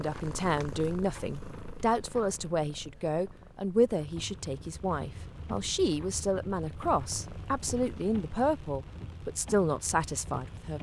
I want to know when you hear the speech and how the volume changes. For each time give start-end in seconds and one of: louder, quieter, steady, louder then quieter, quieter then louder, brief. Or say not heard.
0.0-10.7 steady.